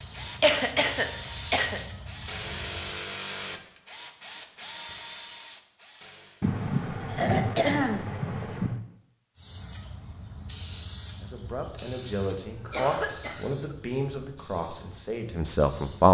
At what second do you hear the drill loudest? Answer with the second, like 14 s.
3 s.